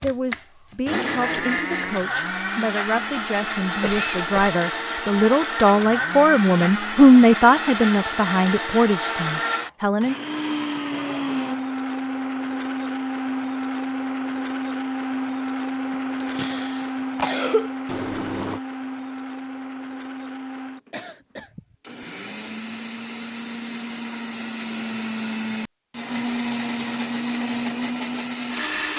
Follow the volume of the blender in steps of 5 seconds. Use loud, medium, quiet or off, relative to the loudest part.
loud, loud, loud, loud, medium, loud.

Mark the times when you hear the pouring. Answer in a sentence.
You can hear the pouring from 17.9 to 18.6 s.